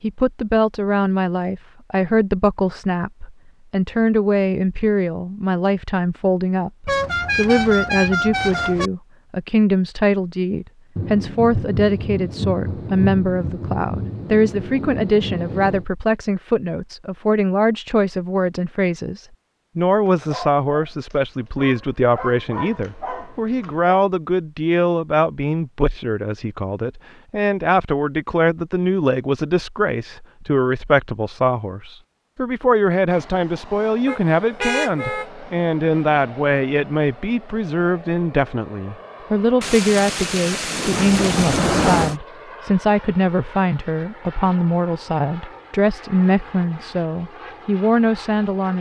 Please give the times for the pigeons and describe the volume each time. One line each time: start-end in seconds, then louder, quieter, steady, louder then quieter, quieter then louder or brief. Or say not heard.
not heard.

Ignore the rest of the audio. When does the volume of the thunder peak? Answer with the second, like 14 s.
42 s.